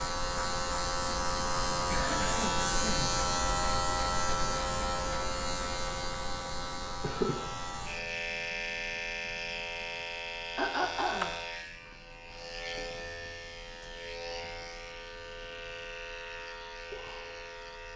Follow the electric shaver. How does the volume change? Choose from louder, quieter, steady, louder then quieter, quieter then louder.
quieter.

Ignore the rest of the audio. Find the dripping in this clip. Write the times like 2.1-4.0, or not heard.
not heard.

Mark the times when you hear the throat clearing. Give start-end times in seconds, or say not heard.
1.9-3.1, 10.6-11.3.